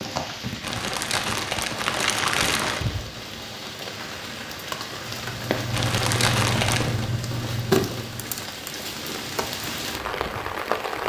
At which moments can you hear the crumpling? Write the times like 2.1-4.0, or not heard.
0.6-2.9, 5.7-7.0.